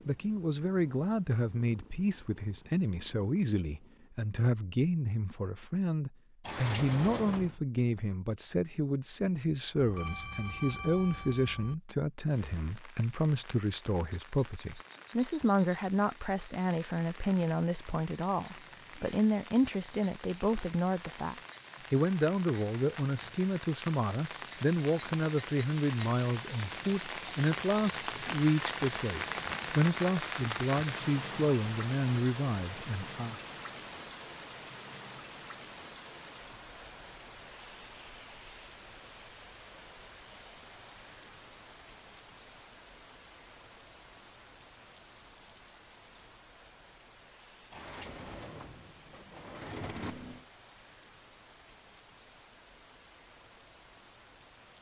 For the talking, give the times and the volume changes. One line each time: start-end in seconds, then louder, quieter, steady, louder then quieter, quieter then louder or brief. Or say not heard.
0.1-33.4 steady.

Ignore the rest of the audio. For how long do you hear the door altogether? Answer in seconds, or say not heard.
4 s.